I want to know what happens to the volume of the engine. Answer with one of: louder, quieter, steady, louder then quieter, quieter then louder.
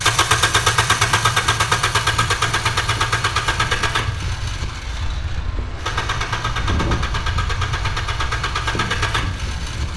quieter then louder.